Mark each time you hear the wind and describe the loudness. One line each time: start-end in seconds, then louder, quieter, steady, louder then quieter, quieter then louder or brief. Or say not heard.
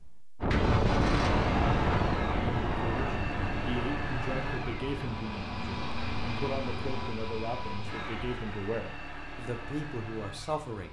0.4-7.1 quieter.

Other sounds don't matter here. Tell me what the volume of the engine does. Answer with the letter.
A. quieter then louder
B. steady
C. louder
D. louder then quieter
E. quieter
E.